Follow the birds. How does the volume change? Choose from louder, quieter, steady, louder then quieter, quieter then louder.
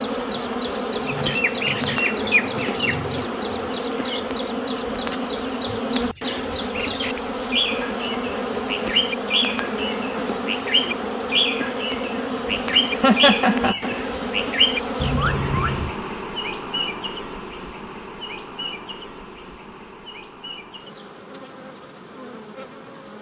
quieter then louder.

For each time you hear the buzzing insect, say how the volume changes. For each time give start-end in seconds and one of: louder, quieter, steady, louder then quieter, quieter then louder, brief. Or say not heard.
0.0-23.1 quieter.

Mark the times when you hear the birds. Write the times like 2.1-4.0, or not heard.
0.0-15.9.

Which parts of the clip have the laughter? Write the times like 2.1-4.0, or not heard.
12.9-13.9.